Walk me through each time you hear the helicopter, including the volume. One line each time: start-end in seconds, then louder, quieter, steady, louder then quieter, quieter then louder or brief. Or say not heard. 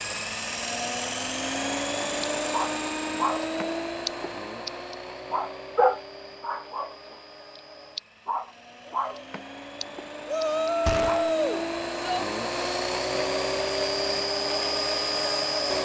0.0-15.7 quieter then louder.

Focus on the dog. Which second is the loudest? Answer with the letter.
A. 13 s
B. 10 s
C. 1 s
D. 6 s
D.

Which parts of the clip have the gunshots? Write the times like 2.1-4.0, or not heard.
10.8-11.3.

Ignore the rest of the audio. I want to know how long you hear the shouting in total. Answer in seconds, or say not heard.
2 s.